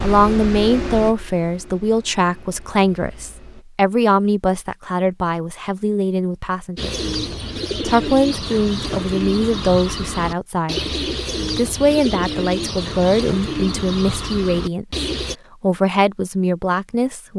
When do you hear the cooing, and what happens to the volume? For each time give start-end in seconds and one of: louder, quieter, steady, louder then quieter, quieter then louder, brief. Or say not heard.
6.8-15.3 steady.